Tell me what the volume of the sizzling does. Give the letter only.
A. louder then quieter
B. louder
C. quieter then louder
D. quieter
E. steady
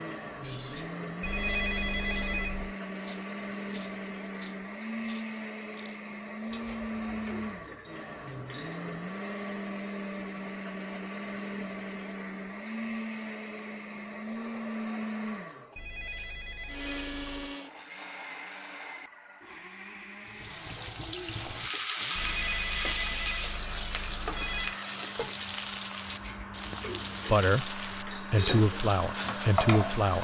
E.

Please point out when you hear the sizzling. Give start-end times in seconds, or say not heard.
20.2-30.1.